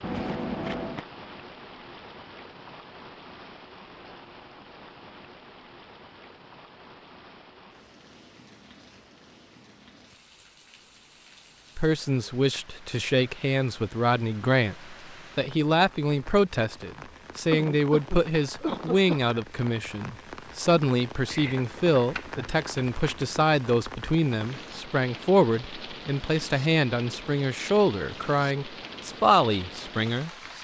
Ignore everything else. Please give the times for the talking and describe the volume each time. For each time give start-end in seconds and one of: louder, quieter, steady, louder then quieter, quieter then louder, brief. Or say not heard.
11.8-30.5 steady.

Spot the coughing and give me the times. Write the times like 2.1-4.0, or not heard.
17.5-19.3.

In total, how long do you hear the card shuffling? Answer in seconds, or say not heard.
3 s.